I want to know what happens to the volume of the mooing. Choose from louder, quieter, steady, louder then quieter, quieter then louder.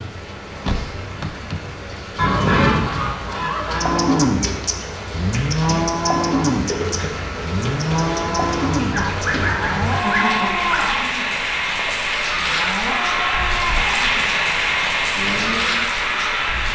quieter.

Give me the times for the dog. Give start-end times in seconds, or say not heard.
not heard.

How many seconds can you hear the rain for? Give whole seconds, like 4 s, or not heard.
17 s.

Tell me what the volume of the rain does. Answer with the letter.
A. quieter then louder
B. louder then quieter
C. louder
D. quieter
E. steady
C.